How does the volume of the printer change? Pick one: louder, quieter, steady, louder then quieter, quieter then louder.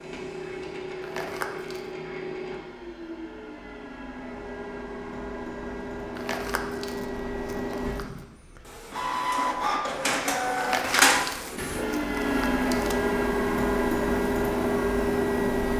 louder.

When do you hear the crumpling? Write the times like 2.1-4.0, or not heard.
1.0-1.9, 6.2-8.2, 10.6-12.9.